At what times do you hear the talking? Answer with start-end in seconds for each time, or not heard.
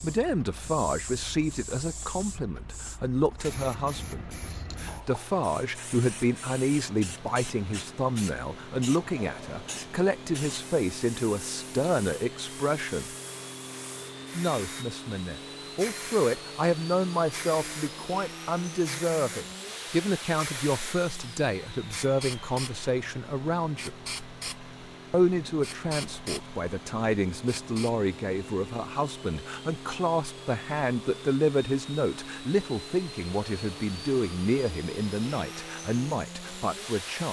0.0-13.1, 14.3-23.9, 25.1-37.2.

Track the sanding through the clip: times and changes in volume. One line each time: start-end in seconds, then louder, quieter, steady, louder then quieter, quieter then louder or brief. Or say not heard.
not heard.